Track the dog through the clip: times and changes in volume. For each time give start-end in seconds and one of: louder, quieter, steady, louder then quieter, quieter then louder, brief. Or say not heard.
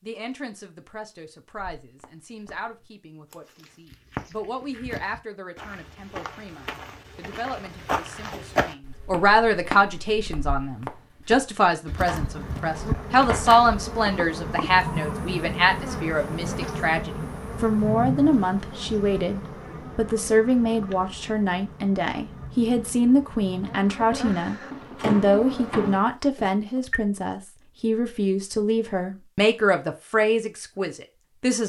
not heard.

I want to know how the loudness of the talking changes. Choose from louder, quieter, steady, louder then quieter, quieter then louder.
louder.